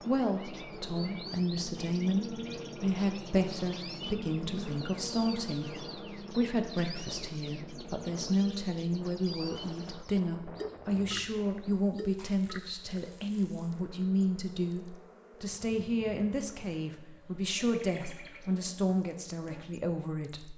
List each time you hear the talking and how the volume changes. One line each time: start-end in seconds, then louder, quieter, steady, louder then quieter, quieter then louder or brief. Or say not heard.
0.0-20.5 steady.